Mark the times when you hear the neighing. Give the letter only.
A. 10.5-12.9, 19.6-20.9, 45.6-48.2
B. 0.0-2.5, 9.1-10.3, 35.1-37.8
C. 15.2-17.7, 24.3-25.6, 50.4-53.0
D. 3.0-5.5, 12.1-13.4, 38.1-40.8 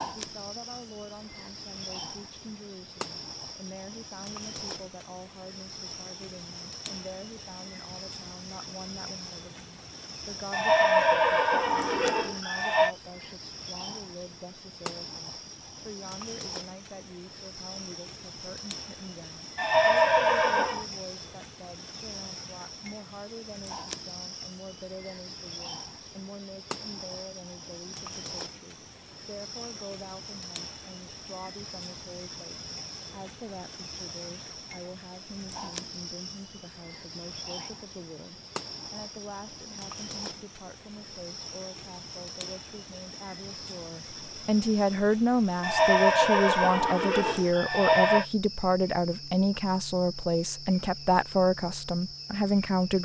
A.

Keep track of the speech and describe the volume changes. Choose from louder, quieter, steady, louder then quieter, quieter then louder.
louder.